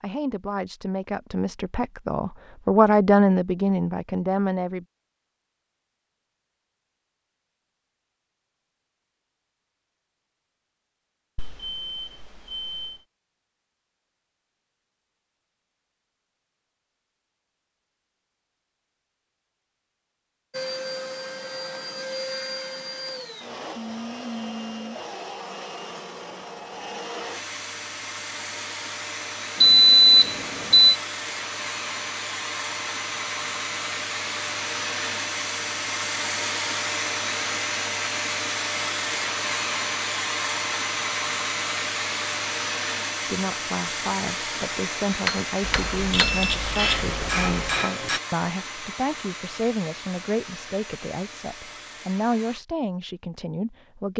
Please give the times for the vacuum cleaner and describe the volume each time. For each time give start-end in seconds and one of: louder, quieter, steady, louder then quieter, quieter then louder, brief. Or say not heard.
20.5-52.6 louder then quieter.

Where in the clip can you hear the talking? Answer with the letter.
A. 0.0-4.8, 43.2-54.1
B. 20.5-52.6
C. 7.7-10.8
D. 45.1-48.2
A.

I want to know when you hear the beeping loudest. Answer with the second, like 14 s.
30 s.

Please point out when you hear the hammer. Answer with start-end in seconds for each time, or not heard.
45.1-48.2.